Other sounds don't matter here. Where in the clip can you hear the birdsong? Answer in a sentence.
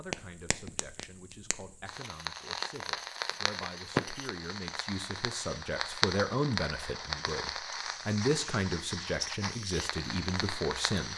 The birdsong can't be heard in this clip.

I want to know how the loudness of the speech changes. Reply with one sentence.
The loudness of the speech goes up.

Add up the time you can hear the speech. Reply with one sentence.
The speech can be heard for 11 seconds in total.